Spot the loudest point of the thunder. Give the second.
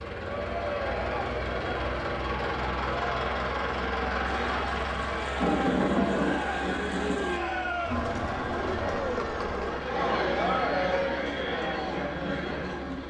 6 s.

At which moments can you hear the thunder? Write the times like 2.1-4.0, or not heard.
4.2-7.4.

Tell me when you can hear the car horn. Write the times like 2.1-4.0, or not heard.
not heard.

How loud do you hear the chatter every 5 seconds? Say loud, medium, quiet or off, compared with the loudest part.
medium, loud, loud.